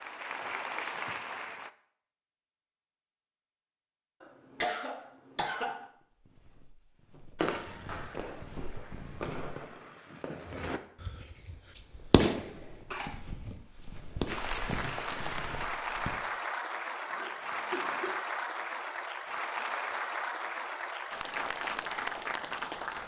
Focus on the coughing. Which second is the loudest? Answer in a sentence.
The loudest moment of the coughing is at 5 seconds.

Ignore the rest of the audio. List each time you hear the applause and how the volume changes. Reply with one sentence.
You can hear the applause briefly from 0.0 to 1.7 s; and from 14.2 to 23.0 s, at a steady volume.